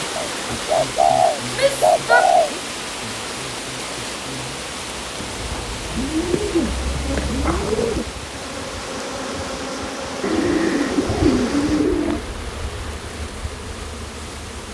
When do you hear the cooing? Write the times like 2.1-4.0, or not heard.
0.1-2.5, 5.2-8.1, 10.2-12.2.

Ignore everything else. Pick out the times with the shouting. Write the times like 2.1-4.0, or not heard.
1.5-2.6.